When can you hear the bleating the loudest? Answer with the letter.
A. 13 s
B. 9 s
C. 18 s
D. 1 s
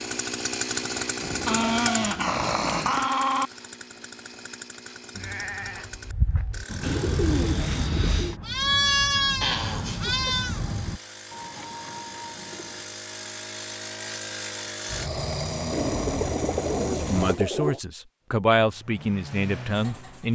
B.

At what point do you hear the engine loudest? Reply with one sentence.
The volume of the engine peaks at 1 second.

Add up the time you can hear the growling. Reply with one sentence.
The growling can be heard for 5 seconds in total.